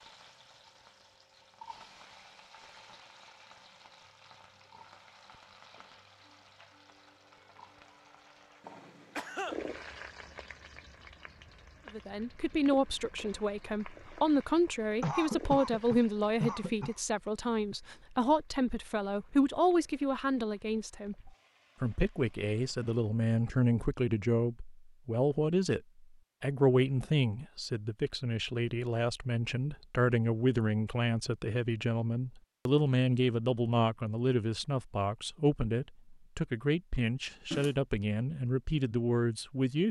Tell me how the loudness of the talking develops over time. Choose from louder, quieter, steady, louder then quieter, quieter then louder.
steady.